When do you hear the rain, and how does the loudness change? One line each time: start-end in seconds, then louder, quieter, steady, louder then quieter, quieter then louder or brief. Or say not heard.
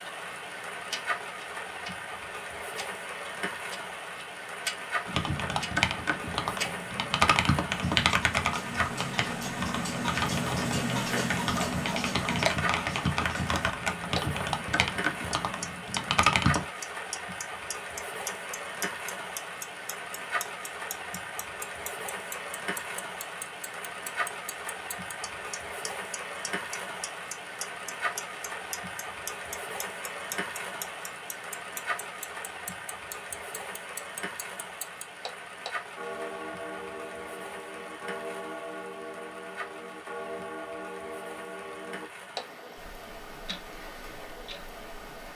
0.0-45.3 quieter.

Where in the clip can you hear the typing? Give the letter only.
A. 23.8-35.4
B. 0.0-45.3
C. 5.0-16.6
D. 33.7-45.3
C.